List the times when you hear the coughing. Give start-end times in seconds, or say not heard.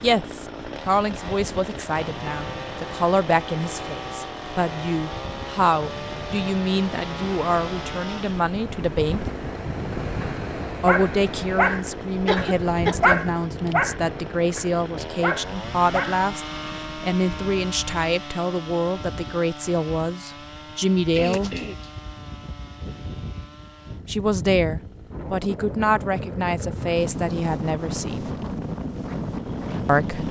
12.2-12.9, 21.1-21.8.